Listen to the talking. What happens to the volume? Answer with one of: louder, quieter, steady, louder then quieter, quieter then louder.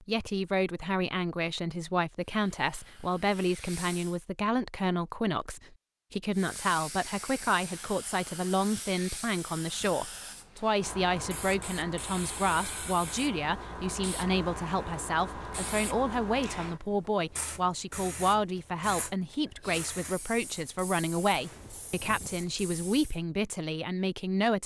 steady.